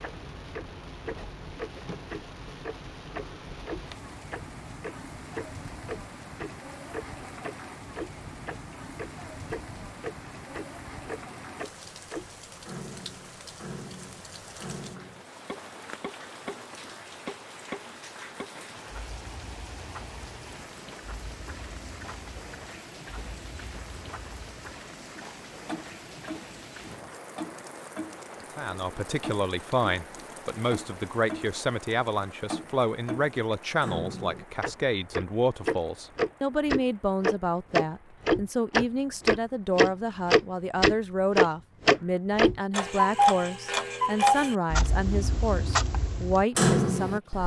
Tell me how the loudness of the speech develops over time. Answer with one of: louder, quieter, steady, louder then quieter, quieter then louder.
steady.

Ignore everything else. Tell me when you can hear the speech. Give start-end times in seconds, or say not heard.
28.6-47.4.